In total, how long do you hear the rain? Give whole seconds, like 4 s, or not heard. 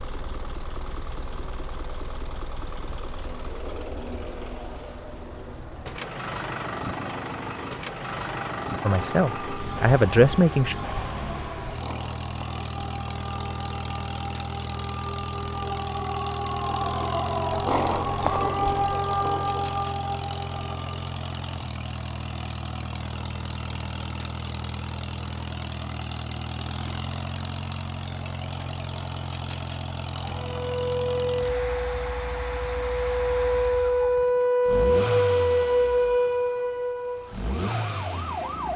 not heard.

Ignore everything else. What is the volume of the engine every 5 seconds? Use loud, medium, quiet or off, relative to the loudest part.
medium, loud, loud, loud, loud, loud, loud, loud.